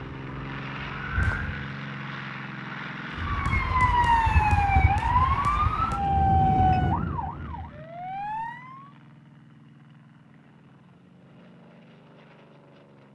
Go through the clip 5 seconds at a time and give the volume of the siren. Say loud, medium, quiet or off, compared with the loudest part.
loud, loud, off.